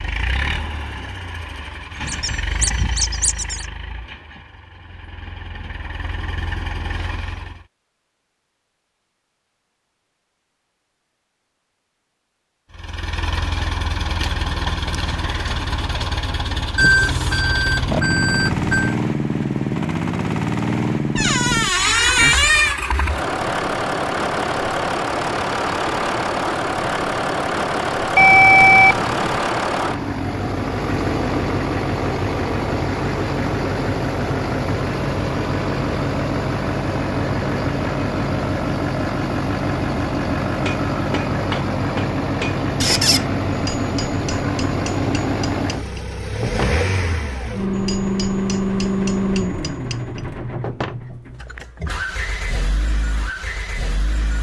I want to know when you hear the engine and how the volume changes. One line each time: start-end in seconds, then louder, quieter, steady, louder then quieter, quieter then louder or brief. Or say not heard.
0.0-7.7 quieter then louder
12.7-54.3 steady.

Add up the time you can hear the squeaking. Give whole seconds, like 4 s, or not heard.
4 s.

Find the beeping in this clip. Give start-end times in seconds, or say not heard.
16.8-18.9, 28.1-29.4.